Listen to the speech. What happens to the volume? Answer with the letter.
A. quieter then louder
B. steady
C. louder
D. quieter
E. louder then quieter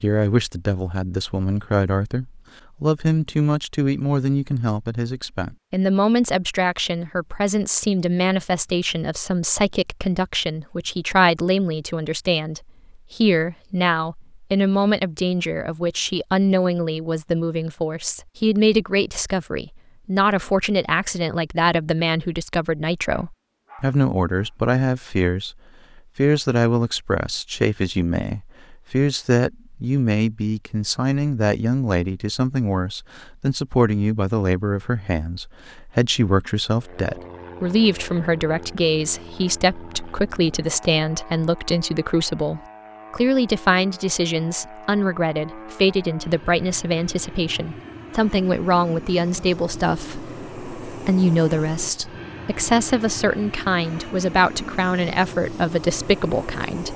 B.